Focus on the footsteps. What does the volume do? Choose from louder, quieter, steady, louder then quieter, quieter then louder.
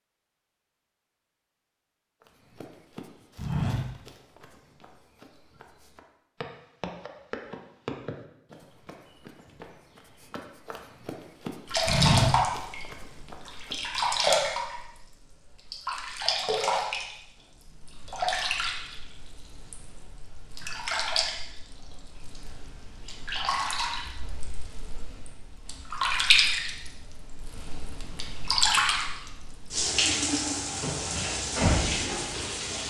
quieter then louder.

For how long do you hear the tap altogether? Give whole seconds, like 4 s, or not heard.
21 s.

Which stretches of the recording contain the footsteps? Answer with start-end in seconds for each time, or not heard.
2.5-13.8.